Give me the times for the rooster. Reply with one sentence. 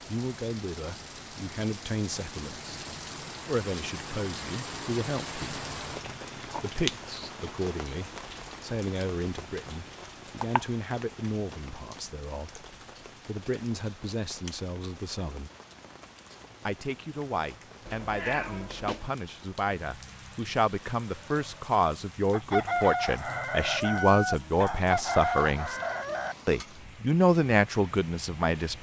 The rooster can be heard from 22.3 to 26.4 s.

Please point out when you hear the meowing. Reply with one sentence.
You can hear the meowing from 17.9 to 19.1 s.